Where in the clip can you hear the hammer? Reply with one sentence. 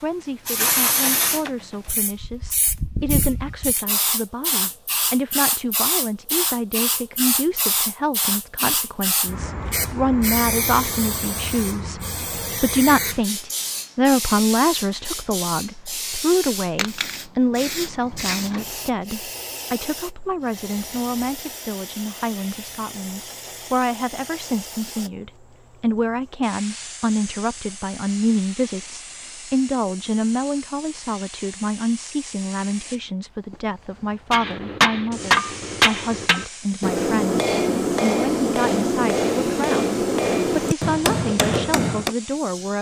The hammer can be heard from 34.3 to 42.1 s.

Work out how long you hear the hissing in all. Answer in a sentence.
The hissing can be heard for 42 seconds in total.